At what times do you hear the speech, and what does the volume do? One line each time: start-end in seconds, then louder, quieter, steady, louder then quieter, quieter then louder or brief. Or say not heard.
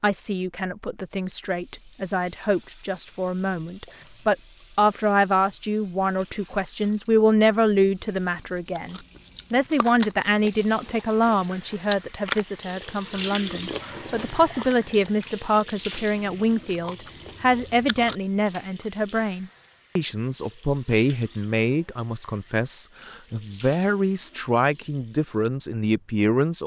0.0-26.6 steady.